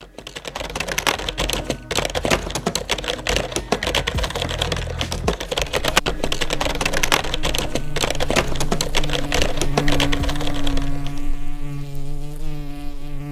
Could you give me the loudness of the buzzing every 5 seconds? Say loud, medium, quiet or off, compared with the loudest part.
off, loud, loud.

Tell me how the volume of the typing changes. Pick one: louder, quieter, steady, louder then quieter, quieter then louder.
steady.